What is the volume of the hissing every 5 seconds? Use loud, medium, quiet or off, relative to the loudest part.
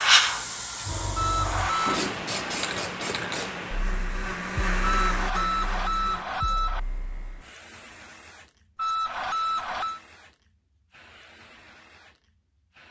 loud, quiet, quiet.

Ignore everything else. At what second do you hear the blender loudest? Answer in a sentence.
The volume of the blender peaks at 5 seconds.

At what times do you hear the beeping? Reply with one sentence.
You can hear the beeping from 1.1 to 1.9 s, from 4.8 to 6.8 s and from 8.8 to 10.0 s.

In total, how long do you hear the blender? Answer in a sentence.
You can hear the blender for 5 seconds altogether.